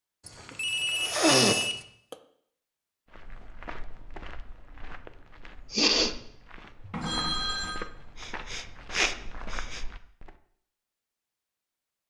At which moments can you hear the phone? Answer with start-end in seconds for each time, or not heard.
0.2-1.9, 6.9-7.8.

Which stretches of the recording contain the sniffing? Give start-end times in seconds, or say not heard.
0.5-2.1, 5.7-6.2, 8.2-9.8.